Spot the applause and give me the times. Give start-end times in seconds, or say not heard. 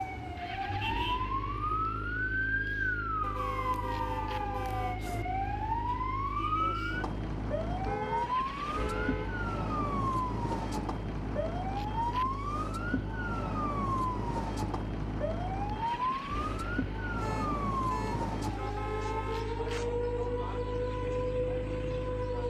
not heard.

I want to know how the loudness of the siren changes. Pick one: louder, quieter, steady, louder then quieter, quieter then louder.
steady.